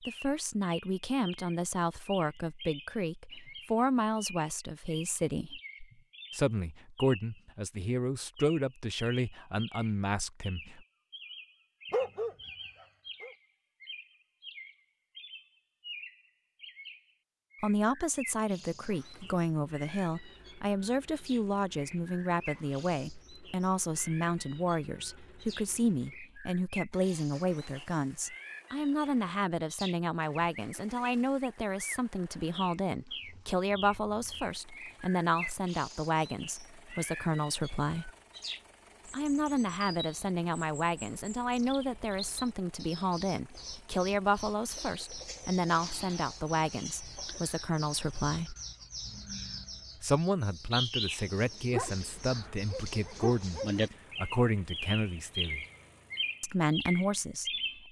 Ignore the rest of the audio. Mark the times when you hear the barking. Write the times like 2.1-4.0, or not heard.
11.9-13.3, 51.7-53.8.